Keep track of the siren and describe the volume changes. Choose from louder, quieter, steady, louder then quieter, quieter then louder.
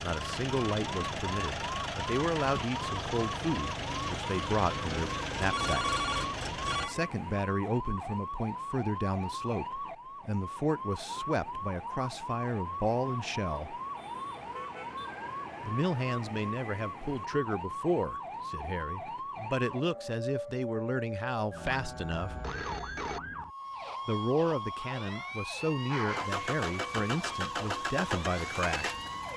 steady.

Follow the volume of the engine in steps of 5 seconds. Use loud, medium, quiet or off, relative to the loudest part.
loud, loud, off, off, off, loud.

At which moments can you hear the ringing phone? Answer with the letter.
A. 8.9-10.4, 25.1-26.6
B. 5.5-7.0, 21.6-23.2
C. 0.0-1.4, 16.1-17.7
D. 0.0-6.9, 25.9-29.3
B.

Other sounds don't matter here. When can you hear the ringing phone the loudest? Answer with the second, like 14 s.
6 s.